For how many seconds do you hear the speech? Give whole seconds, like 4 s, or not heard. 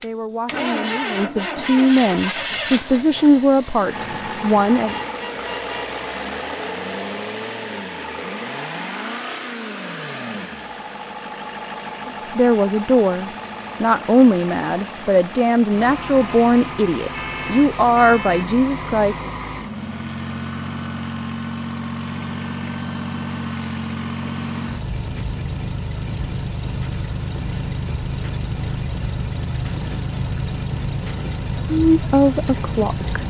14 s.